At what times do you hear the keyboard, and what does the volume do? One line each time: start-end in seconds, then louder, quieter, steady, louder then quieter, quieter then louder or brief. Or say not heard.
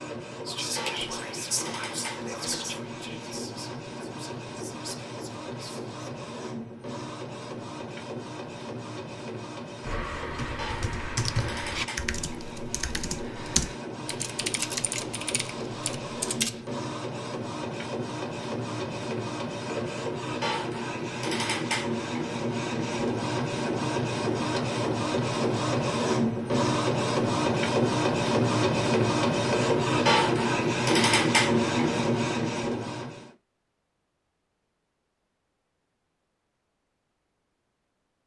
9.8-16.6 quieter.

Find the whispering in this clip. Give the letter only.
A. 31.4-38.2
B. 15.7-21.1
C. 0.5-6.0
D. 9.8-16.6
C.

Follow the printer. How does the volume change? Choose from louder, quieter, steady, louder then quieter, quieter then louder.
louder.